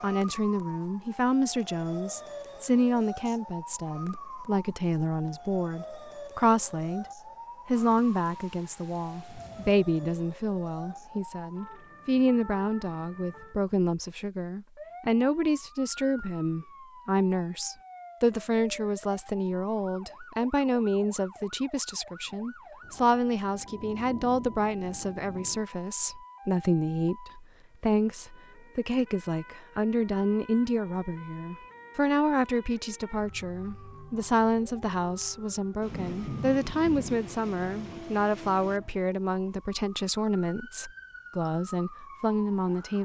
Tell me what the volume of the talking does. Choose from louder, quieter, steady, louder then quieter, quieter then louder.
steady.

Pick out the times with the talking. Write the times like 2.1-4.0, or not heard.
0.0-7.0, 7.7-43.0.